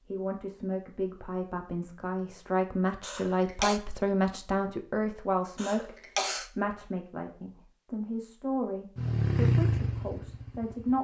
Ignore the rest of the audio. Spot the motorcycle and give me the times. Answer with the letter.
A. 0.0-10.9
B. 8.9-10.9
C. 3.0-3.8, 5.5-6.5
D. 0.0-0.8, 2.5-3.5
B.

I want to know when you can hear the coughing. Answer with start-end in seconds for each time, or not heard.
3.0-3.8, 5.5-6.5.